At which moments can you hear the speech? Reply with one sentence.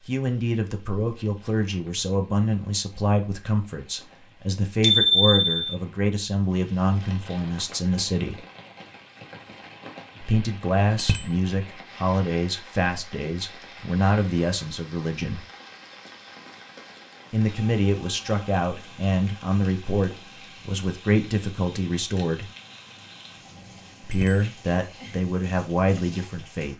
You can hear the speech from 0.1 to 8.4 s, from 10.2 to 15.4 s, from 17.3 to 22.5 s and from 24.0 to 26.7 s.